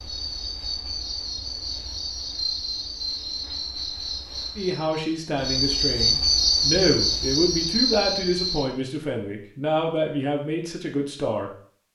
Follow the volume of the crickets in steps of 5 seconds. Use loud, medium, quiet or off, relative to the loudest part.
medium, loud, off.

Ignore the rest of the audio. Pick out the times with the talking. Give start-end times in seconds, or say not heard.
4.5-11.9.